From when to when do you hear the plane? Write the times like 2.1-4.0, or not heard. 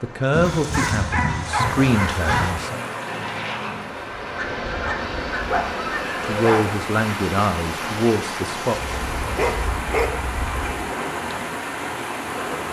2.6-12.6.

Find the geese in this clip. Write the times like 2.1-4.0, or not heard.
0.3-2.5, 4.3-6.4, 8.7-10.8.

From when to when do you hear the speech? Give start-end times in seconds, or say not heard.
0.0-2.8, 6.2-8.8.